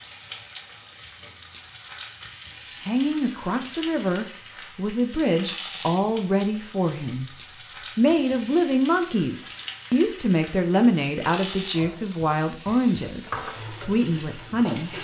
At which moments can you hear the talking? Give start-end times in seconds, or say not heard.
2.8-14.9.